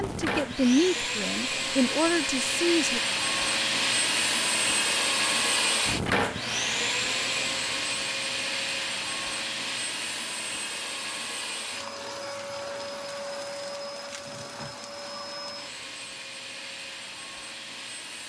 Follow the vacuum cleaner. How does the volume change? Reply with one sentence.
The volume of the vacuum cleaner goes down.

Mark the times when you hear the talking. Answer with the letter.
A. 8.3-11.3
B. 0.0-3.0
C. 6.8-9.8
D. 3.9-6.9
B.